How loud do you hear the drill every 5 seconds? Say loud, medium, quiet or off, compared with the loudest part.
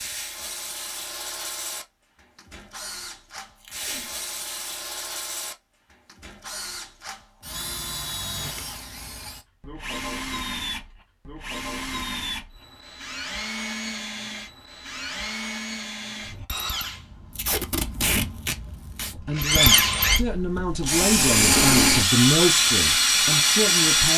quiet, quiet, quiet, medium, loud.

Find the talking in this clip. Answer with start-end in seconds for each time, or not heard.
19.1-24.1.